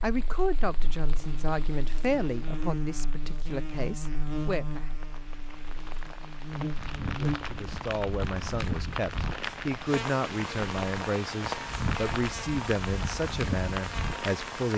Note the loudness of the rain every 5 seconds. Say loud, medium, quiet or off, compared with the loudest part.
quiet, loud, loud.